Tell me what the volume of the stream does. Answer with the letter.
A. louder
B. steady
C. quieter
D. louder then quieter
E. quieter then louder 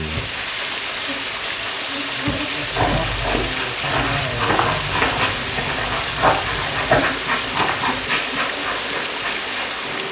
B.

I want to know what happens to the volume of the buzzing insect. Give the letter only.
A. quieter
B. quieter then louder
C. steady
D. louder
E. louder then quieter
D.